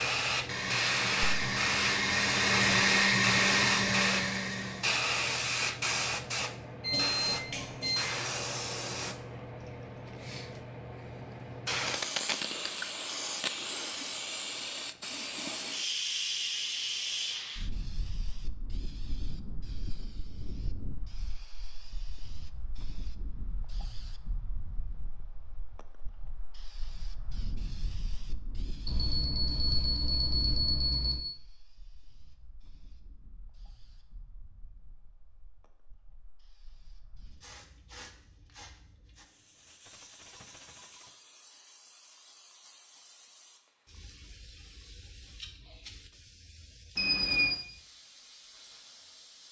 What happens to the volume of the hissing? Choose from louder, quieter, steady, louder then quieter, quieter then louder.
quieter.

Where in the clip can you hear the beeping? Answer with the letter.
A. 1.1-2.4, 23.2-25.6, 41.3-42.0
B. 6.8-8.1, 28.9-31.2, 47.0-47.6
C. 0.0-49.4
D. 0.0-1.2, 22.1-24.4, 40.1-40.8
B.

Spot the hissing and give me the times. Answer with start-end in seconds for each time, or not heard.
0.0-49.4.